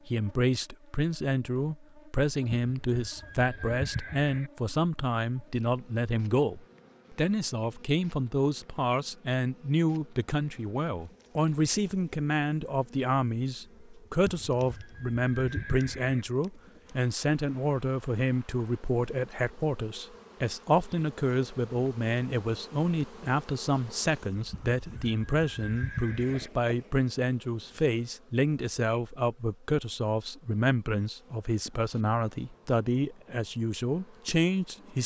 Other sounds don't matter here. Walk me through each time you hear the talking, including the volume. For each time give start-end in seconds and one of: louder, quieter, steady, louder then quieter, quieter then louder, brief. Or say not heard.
0.1-35.0 steady.